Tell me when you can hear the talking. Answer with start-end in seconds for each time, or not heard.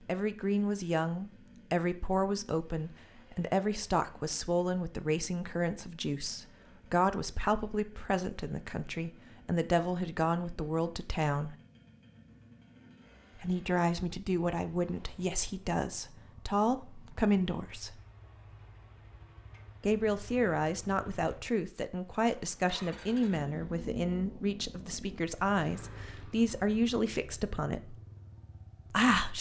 0.1-11.6, 13.3-18.0, 19.8-27.9, 28.9-29.3.